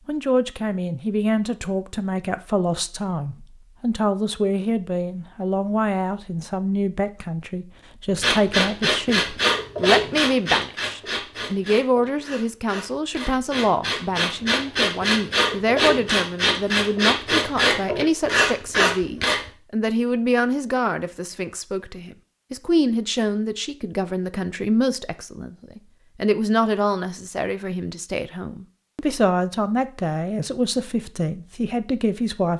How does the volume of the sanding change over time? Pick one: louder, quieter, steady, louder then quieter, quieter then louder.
quieter then louder.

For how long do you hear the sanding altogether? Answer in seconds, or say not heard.
11 s.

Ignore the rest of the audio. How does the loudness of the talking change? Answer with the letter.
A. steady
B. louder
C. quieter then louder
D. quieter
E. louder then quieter
A.